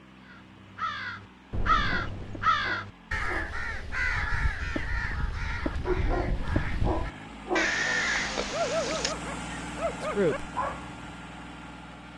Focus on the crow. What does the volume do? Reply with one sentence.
The volume of the crow goes down, then up.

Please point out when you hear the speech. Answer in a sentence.
You can hear the speech from 10.0 to 10.4 s.